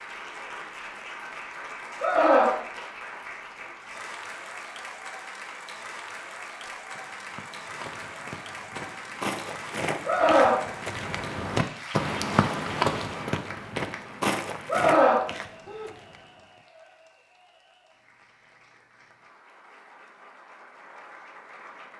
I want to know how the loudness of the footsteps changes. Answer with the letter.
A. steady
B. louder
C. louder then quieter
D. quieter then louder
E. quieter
C.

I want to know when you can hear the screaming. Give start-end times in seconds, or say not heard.
2.0-2.5, 10.1-10.7, 14.7-15.9.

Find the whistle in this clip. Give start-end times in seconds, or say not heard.
not heard.